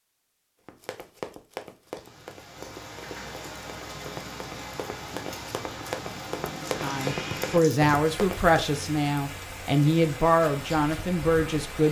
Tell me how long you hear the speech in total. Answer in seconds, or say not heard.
5 s.